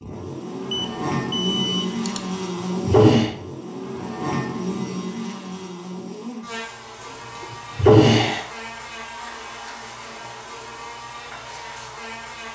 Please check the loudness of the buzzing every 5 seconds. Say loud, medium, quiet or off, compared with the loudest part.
loud, medium, medium.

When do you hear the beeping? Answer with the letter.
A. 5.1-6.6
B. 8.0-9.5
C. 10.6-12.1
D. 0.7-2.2
D.